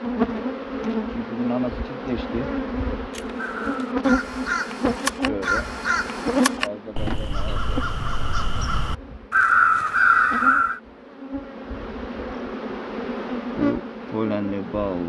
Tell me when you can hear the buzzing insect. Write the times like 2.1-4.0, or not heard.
0.0-15.0.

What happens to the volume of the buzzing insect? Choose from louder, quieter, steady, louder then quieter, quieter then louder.
quieter then louder.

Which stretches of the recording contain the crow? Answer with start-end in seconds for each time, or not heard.
3.1-10.8.